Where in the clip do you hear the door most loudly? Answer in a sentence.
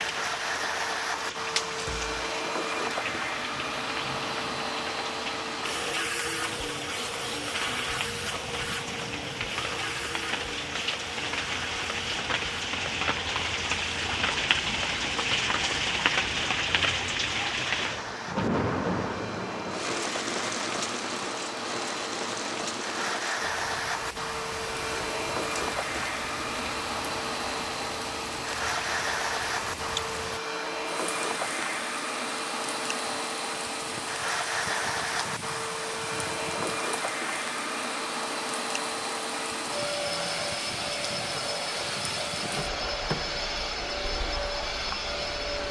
The loudest moment of the door is at 43 seconds.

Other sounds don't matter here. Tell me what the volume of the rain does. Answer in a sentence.
The volume of the rain goes up, then down.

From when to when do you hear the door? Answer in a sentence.
You can hear the door from 1.7 to 2.2 s and from 42.5 to 43.5 s.